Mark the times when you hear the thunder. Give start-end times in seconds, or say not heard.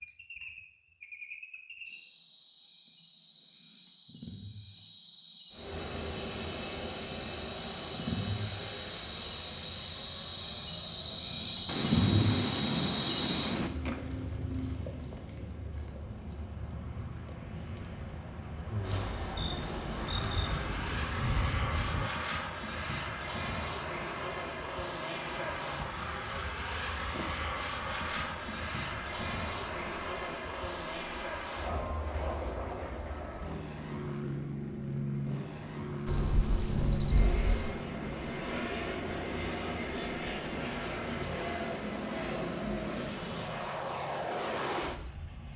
11.7-13.7, 19.4-22.1, 36.0-37.8.